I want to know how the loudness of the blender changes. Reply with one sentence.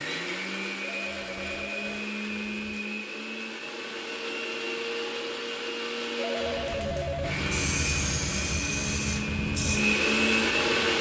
The volume of the blender goes up.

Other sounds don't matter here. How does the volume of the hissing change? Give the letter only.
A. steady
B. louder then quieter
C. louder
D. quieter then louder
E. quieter
B.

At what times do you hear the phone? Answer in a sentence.
The phone can be heard from 0.8 to 2.8 s and from 6.2 to 7.5 s.